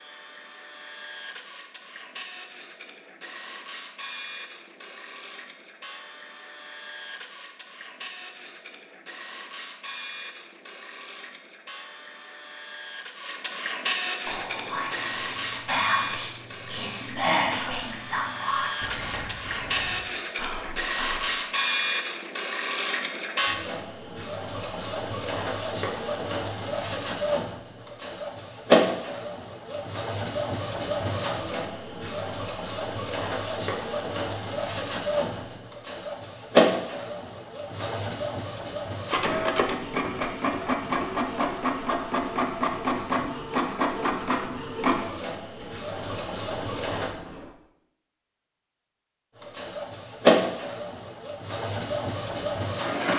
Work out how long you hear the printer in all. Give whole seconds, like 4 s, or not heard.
51 s.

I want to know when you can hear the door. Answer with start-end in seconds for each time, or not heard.
45.5-47.5.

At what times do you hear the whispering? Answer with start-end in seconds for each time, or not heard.
14.2-21.2.